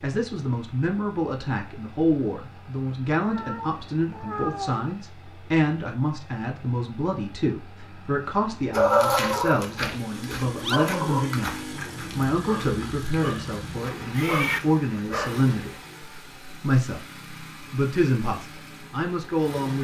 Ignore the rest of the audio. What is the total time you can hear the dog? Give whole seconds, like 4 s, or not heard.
7 s.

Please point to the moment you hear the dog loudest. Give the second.
9 s.